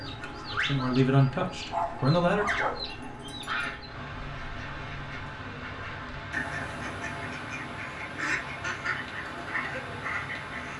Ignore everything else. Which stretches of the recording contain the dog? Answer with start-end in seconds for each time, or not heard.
1.7-3.0.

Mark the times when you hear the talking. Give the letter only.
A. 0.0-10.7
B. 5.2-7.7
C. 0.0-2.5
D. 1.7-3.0
C.